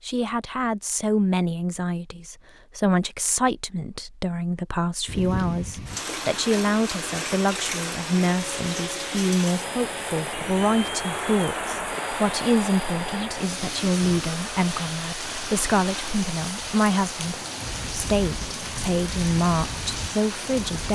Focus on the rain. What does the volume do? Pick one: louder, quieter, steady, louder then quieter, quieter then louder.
steady.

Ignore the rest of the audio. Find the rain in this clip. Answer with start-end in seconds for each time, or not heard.
5.0-20.9.